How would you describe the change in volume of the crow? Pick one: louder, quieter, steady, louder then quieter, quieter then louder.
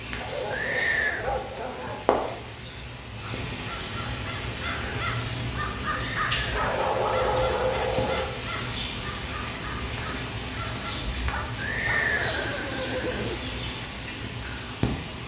louder then quieter.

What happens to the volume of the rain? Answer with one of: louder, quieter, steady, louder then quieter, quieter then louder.
steady.